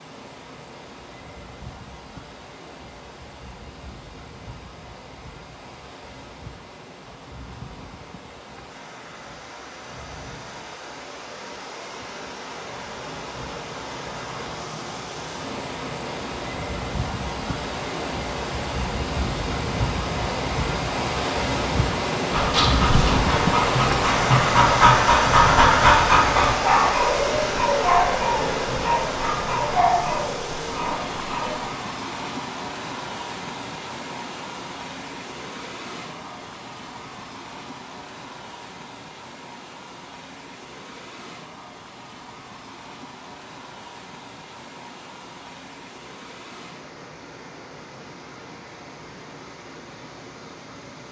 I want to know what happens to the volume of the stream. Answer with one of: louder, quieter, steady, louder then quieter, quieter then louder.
louder then quieter.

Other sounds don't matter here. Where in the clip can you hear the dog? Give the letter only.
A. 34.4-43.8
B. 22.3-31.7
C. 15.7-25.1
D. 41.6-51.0
B.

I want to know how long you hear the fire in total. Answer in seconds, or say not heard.
not heard.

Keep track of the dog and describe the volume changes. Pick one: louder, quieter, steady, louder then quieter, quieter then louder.
louder then quieter.